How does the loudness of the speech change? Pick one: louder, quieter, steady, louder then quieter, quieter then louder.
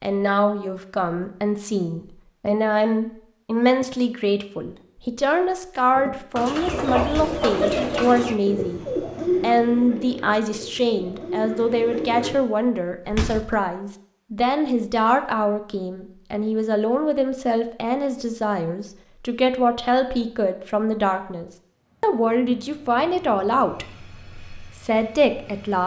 steady.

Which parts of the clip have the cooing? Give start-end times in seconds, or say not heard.
6.0-12.3.